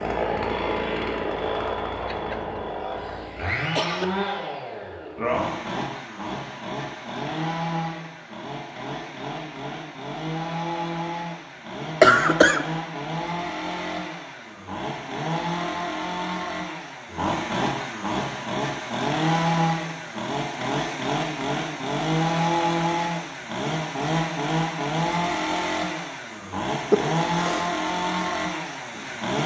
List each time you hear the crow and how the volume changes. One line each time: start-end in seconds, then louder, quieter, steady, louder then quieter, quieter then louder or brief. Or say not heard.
not heard.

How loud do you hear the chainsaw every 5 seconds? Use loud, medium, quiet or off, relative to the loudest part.
loud, medium, medium, loud, loud, loud.